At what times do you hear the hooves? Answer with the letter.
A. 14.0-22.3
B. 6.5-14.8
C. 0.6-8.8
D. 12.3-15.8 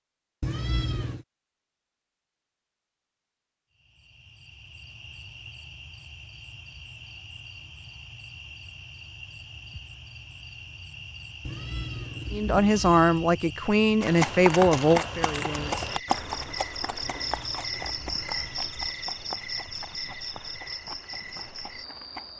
A.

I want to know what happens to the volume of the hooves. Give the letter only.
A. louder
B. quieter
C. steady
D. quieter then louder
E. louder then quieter
B.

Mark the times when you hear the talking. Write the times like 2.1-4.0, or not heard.
12.3-15.8.